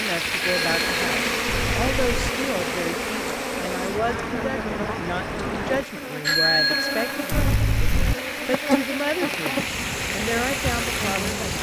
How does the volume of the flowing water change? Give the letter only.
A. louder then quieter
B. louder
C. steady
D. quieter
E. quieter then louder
E.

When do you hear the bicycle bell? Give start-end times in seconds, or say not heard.
0.4-2.3, 6.2-8.2.